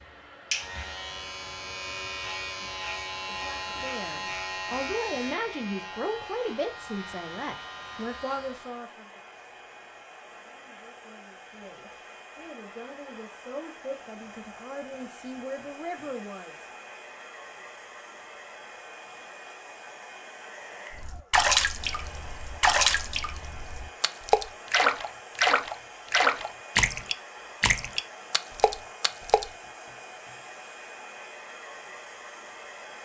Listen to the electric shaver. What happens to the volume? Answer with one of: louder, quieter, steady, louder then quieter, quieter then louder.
quieter.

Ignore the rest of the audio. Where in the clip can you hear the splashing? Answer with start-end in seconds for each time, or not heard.
20.9-29.5.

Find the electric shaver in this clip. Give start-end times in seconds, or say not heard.
0.0-8.8.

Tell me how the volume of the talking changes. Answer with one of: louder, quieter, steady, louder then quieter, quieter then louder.
quieter then louder.